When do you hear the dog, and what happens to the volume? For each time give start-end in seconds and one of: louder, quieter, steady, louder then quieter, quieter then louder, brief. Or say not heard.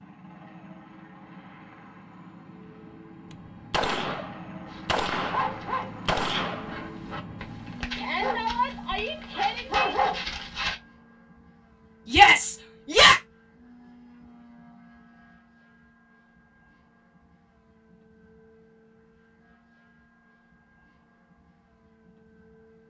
4.7-10.8 quieter then louder.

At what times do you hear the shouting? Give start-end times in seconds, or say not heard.
8.0-9.9, 12.1-13.2.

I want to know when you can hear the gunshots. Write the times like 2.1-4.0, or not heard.
3.3-6.8.